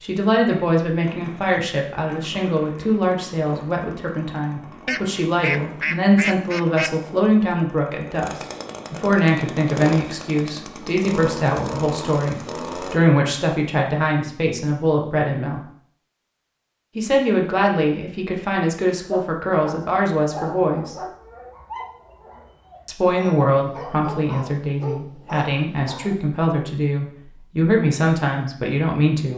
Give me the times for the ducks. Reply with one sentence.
The ducks can be heard from 4.8 to 6.9 s.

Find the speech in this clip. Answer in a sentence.
The speech can be heard from 0.0 to 15.6 s, from 16.9 to 20.9 s and from 22.9 to 29.3 s.